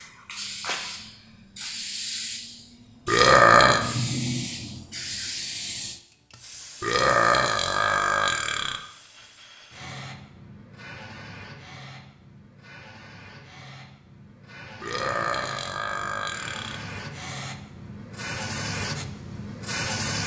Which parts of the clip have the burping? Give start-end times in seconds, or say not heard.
3.0-3.9, 6.8-8.8, 14.8-16.8.